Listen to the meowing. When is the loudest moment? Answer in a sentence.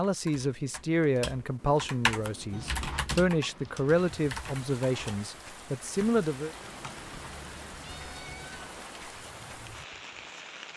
The loudest moment of the meowing is at 3 seconds.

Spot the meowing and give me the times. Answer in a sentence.
The meowing can be heard from 2.5 to 3.1 s and from 6.8 to 8.8 s.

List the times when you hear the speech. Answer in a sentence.
The speech can be heard from 0.0 to 6.5 s.